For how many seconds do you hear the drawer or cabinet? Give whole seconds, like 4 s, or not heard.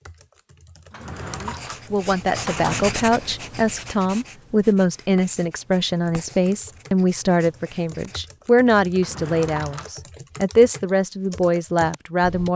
3 s.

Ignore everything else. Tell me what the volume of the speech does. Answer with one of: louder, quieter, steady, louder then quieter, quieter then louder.
steady.